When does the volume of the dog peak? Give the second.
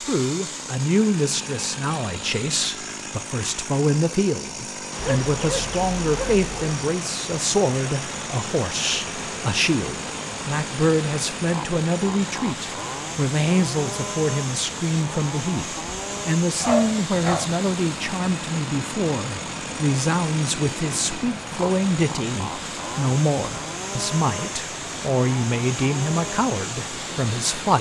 17 s.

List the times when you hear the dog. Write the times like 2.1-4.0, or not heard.
5.0-6.8, 16.6-17.5.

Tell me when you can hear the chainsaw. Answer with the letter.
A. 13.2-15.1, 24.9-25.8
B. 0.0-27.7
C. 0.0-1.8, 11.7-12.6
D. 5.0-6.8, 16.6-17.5
B.